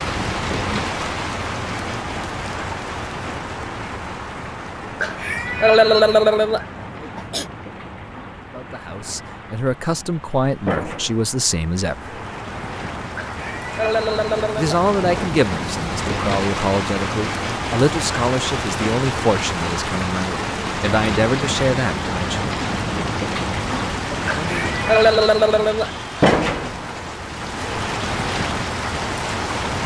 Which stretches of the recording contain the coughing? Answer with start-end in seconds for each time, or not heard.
5.0-7.5, 13.2-14.8, 24.3-25.9.